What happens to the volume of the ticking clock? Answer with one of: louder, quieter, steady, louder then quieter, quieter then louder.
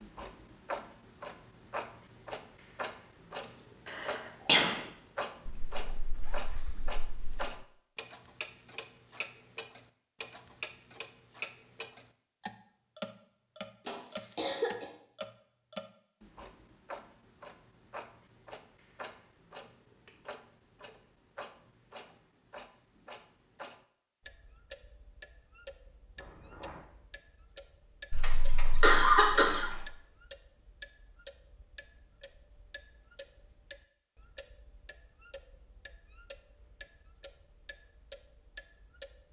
quieter.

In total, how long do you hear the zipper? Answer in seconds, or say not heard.
3 s.